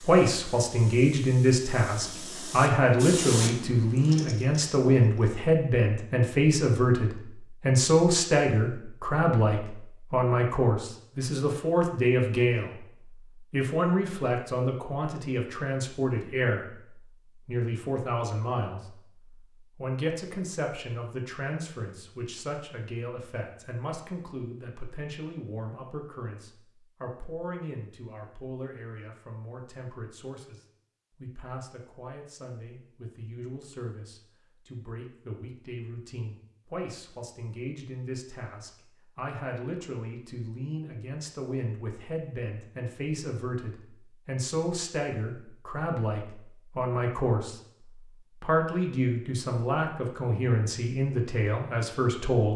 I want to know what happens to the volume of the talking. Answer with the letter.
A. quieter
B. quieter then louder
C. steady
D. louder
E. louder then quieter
B.